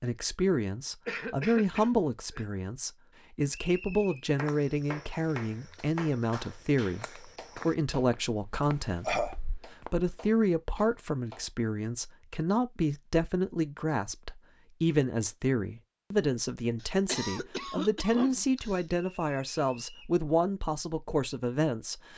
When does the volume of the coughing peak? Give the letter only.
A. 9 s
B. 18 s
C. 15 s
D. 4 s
A.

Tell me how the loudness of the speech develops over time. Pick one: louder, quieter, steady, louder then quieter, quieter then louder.
steady.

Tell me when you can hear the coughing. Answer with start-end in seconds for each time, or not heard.
1.1-2.5, 8.6-9.3, 16.8-18.9.